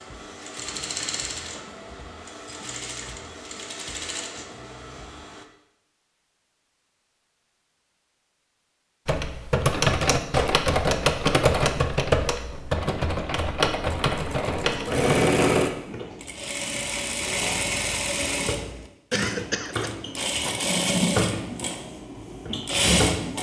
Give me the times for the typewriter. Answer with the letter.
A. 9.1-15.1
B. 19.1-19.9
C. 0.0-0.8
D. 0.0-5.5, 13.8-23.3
A.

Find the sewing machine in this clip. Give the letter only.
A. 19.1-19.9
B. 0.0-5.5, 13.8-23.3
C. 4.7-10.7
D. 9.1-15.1
B.